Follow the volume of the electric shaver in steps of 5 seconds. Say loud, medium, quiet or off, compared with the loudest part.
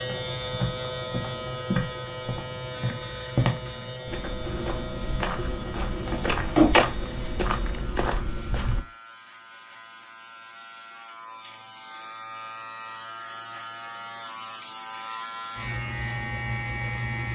loud, medium, medium, loud.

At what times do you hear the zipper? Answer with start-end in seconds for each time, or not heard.
5.8-6.7.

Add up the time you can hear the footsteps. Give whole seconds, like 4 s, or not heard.
9 s.